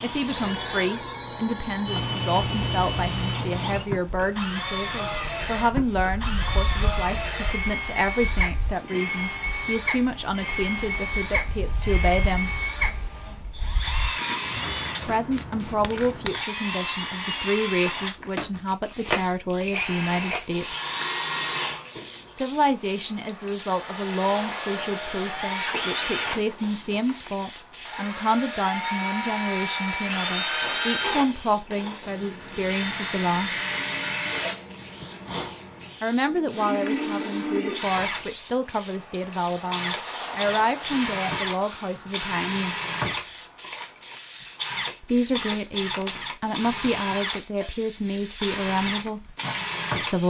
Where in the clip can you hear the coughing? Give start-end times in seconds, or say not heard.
34.2-35.1.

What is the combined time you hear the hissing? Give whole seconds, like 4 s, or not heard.
50 s.